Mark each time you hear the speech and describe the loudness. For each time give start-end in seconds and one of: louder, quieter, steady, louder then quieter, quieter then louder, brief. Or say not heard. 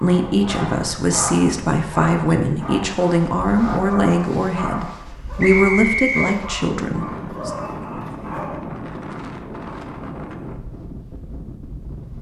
0.0-7.5 steady.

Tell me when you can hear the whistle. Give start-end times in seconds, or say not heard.
5.4-6.4.